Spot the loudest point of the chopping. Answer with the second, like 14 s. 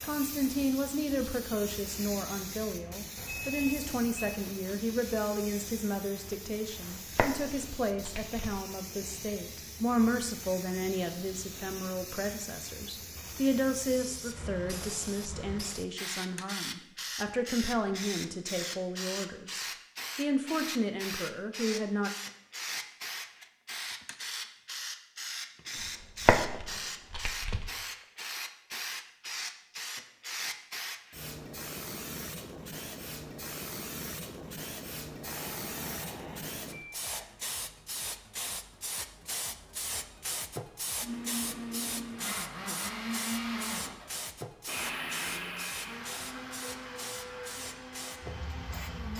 26 s.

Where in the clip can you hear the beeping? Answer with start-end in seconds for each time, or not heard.
3.1-4.4, 35.2-37.2.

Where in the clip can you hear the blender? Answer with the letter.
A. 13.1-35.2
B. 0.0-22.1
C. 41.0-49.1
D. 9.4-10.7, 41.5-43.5
C.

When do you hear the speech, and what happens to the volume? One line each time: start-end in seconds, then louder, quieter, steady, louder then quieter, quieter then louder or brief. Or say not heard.
0.0-22.1 steady.